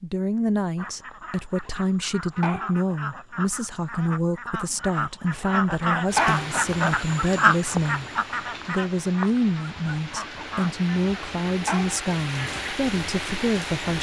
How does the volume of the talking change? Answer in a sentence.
The volume of the talking stays about the same.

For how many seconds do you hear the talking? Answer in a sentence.
The talking can be heard for 13 seconds in total.